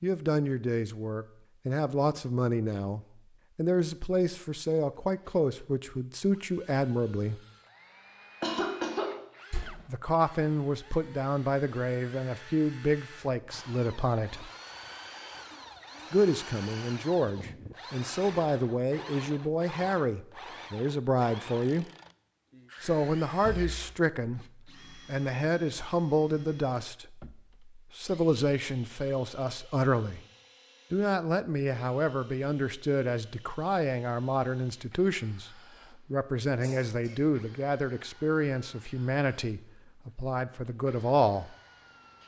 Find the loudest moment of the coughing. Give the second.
9 s.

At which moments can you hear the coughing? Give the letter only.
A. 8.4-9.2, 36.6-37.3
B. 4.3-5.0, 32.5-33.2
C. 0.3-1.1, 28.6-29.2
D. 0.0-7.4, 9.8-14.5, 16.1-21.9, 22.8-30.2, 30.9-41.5
A.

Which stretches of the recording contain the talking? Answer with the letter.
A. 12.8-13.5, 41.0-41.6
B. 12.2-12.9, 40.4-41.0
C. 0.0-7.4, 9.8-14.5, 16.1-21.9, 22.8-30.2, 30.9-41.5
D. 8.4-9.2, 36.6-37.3
C.